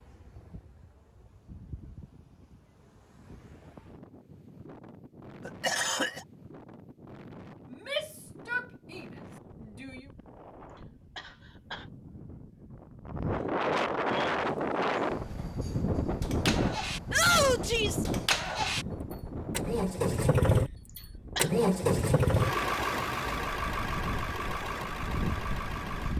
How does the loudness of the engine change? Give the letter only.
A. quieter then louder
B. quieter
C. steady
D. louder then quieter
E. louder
D.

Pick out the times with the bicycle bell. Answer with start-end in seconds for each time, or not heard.
not heard.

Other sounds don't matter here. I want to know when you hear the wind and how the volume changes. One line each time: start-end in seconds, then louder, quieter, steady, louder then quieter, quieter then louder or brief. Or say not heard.
0.0-26.1 louder then quieter.